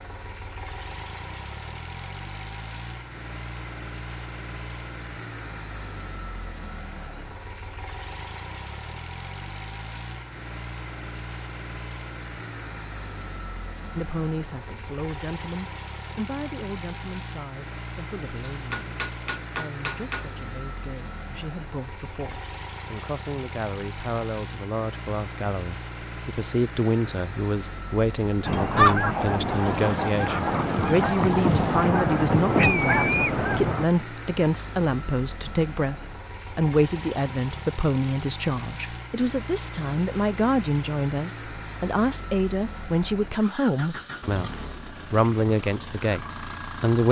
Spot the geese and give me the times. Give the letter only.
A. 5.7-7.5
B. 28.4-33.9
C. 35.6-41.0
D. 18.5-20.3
B.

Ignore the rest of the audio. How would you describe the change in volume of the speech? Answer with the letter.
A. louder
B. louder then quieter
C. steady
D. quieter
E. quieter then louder
A.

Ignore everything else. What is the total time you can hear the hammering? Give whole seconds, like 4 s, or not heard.
2 s.